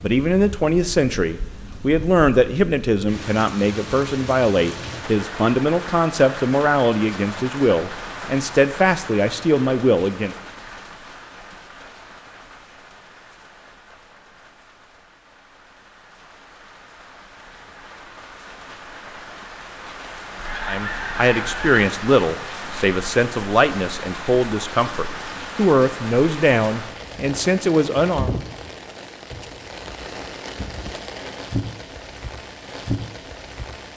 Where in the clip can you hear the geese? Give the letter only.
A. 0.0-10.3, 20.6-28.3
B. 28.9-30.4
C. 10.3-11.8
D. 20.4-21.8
D.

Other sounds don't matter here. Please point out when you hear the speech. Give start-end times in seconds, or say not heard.
0.0-10.3, 20.6-28.3.